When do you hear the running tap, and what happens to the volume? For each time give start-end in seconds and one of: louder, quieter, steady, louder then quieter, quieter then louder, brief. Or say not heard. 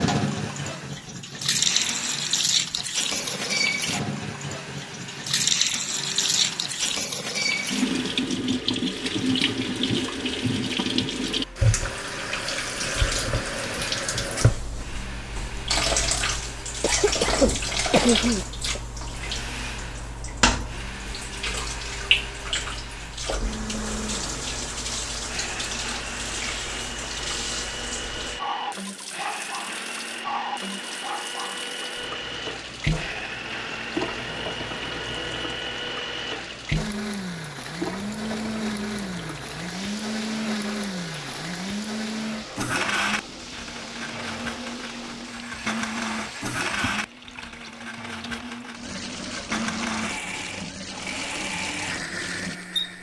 0.0-52.9 quieter.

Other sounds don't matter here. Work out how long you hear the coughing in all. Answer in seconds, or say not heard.
2 s.